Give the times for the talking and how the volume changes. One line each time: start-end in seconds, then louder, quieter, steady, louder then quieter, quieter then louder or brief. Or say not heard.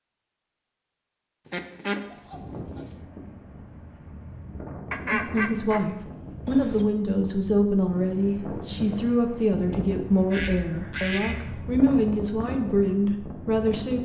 5.1-14.0 steady.